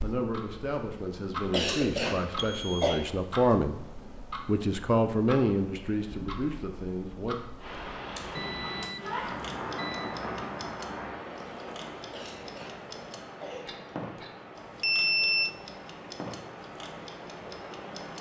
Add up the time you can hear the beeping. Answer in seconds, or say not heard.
3 s.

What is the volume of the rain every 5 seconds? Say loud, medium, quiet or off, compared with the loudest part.
off, loud, loud, medium.